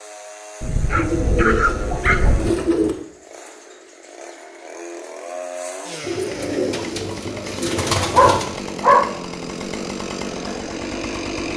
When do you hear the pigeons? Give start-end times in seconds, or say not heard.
0.9-3.0, 6.0-8.5.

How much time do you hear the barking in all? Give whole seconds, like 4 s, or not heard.
3 s.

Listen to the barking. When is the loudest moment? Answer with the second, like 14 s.
9 s.